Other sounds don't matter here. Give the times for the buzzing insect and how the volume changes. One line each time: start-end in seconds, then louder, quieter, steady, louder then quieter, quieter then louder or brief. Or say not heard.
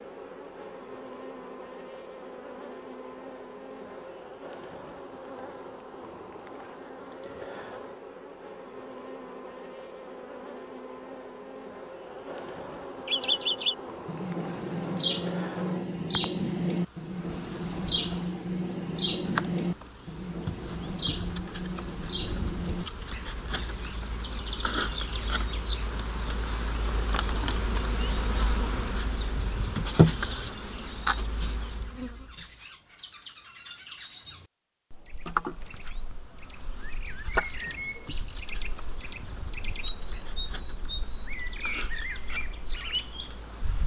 0.0-32.5 louder
35.2-43.8 louder then quieter.